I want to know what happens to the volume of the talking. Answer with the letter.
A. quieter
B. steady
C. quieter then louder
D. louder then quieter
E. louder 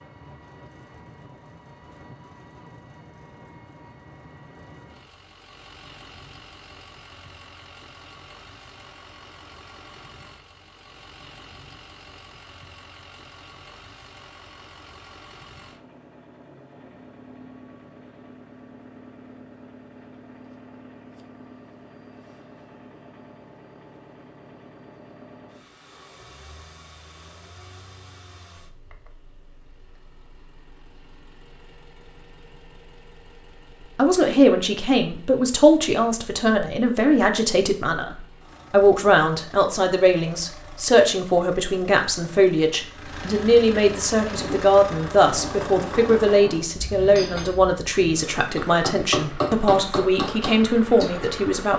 B.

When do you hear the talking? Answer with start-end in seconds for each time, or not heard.
34.0-51.7.